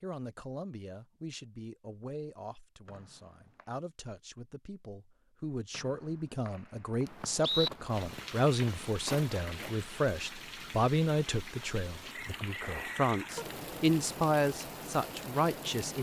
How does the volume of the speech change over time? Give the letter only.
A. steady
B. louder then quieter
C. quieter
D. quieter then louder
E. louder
E.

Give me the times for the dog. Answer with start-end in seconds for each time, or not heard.
not heard.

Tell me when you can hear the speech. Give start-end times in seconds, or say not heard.
0.0-15.9.